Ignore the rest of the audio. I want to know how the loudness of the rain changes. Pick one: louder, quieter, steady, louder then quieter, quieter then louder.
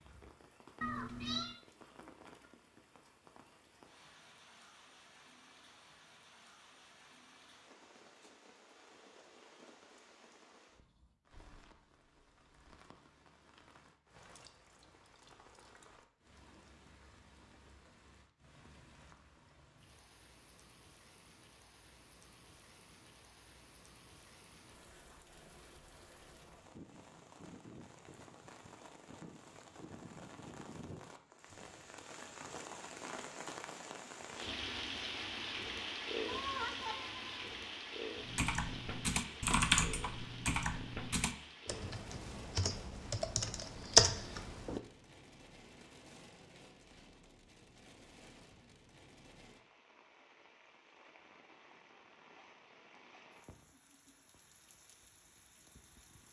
louder then quieter.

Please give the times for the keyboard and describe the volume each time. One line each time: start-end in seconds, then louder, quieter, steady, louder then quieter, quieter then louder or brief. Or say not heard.
38.2-44.8 quieter then louder.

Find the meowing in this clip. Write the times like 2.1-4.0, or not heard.
0.8-1.6, 36.2-37.4.